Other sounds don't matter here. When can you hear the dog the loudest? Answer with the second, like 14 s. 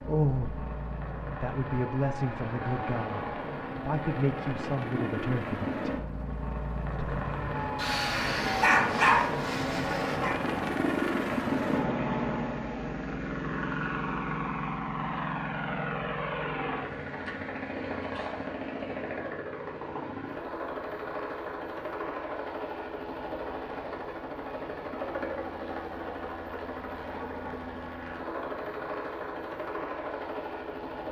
9 s.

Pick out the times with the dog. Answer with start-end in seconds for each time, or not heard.
7.8-10.3.